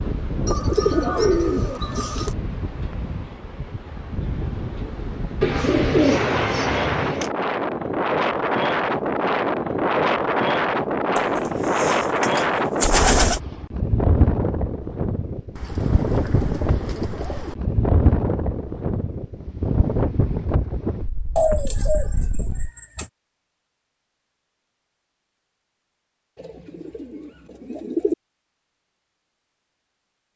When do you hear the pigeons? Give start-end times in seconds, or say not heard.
0.5-2.3, 5.4-7.3, 11.2-13.4, 15.6-17.6, 21.4-23.1, 26.4-28.1.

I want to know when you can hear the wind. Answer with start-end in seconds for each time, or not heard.
0.0-22.7.